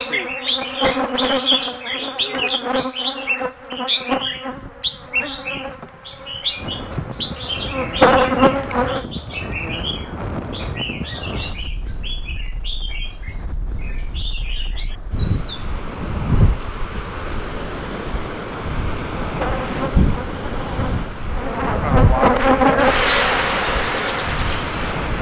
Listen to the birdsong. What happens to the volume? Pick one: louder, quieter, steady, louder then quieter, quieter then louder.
quieter.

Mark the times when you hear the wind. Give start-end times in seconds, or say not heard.
6.5-25.1.